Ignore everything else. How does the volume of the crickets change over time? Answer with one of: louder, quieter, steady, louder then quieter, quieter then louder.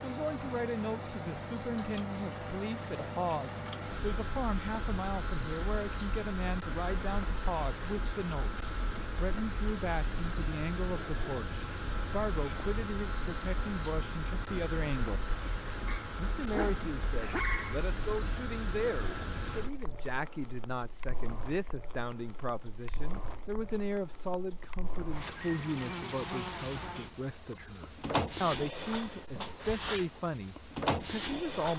quieter then louder.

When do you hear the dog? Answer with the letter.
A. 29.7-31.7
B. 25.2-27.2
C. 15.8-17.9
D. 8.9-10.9
C.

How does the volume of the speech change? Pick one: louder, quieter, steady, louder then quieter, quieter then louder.
steady.